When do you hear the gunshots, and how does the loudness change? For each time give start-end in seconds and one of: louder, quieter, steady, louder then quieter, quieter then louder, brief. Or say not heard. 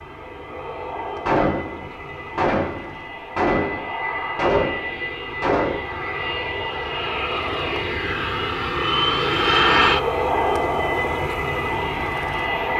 1.2-5.8 louder then quieter.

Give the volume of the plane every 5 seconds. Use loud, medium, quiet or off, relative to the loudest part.
medium, loud, loud.